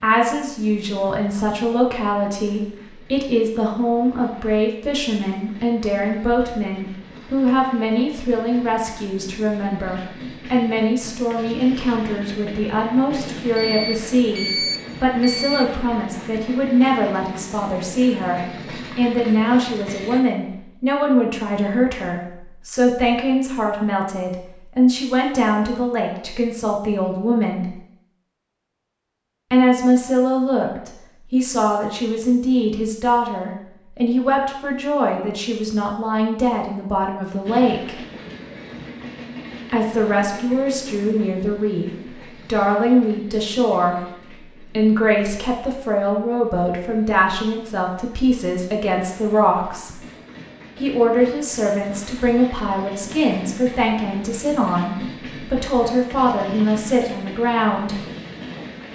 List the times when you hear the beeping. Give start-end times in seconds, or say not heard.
13.6-15.7.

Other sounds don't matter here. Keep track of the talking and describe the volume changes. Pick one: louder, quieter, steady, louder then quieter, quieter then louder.
steady.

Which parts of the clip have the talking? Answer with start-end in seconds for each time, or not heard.
0.0-27.8, 29.5-38.0, 39.6-44.0, 44.6-50.0, 50.8-58.0.